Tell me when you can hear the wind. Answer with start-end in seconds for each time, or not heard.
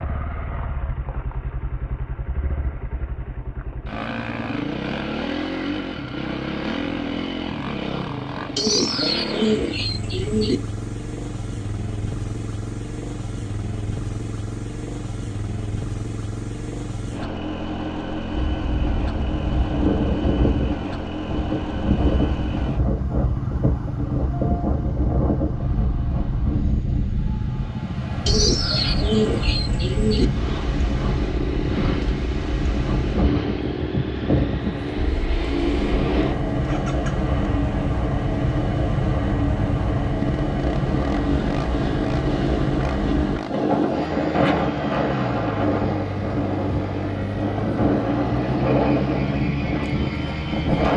18.4-50.9.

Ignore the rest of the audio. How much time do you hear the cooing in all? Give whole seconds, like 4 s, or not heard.
4 s.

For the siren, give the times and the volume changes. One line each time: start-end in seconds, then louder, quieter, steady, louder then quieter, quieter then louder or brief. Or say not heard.
not heard.